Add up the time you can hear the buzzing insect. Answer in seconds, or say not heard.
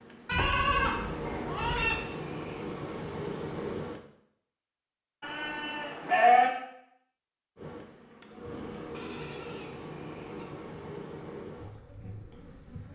9 s.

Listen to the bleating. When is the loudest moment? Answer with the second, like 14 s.
6 s.